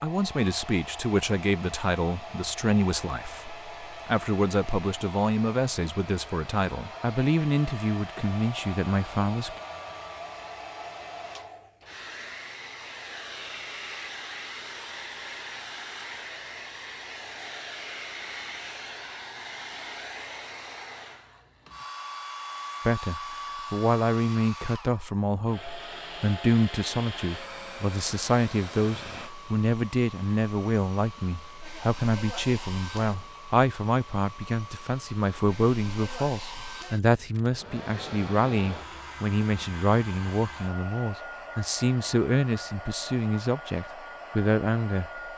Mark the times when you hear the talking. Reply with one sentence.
You can hear the talking from 0.0 to 9.5 s and from 22.9 to 45.1 s.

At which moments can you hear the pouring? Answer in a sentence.
The pouring can't be heard in this clip.